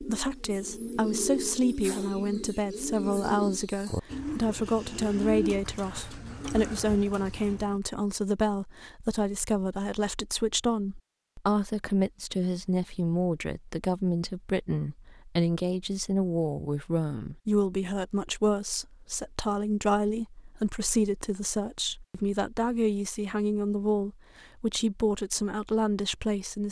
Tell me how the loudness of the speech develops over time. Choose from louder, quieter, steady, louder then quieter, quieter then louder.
steady.